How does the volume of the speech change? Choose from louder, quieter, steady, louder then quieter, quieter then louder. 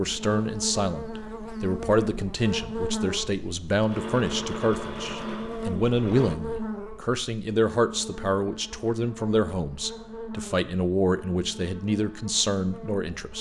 steady.